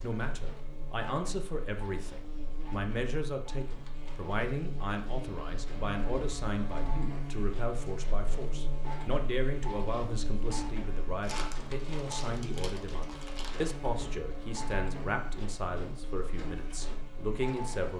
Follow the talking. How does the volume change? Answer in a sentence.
The loudness of the talking stays about the same.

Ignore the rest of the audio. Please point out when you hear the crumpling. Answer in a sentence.
You can hear the crumpling from 11.2 to 13.8 s.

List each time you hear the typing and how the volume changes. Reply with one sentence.
The typing can't be heard in this clip.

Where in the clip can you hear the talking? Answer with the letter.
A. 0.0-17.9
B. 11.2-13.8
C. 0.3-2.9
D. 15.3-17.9
A.